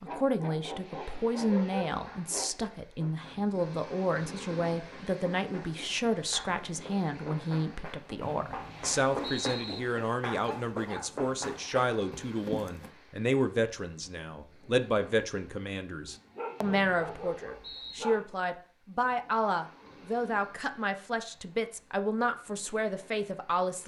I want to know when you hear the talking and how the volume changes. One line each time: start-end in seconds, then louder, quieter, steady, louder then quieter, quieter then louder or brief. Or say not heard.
0.0-23.8 steady.